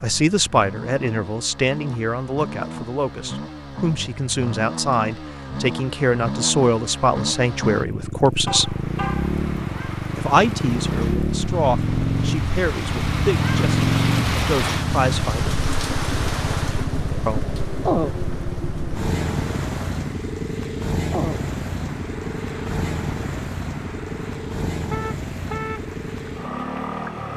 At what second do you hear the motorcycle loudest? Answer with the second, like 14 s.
14 s.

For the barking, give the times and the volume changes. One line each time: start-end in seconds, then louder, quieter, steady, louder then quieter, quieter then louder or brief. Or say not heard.
not heard.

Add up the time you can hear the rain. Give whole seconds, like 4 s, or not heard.
19 s.